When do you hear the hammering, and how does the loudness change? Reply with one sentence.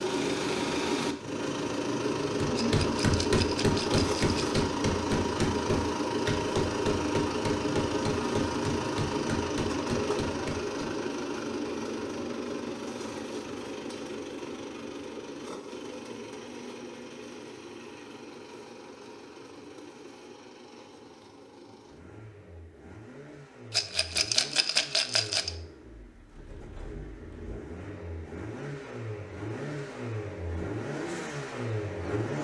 You can hear the hammering from 2.4 to 10.8 s, getting quieter.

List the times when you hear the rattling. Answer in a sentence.
You can hear the rattling from 2.5 to 4.6 s and from 23.7 to 25.5 s.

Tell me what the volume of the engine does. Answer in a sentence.
The volume of the engine goes down, then up.